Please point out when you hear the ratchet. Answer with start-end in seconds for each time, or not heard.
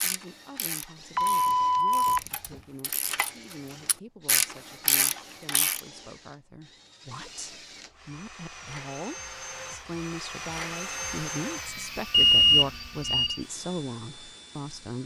0.0-5.8.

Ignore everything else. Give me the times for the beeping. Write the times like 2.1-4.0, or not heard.
1.1-2.5, 12.1-13.4.